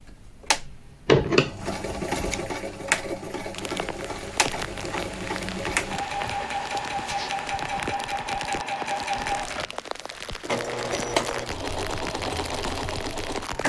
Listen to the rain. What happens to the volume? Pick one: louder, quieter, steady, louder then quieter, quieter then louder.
steady.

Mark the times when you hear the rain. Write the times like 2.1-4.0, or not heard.
3.5-13.6.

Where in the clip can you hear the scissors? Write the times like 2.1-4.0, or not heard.
1.1-2.4.